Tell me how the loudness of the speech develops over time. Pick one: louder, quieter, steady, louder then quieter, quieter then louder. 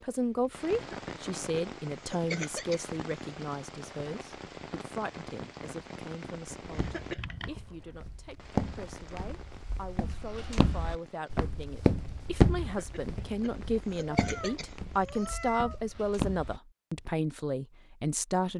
quieter then louder.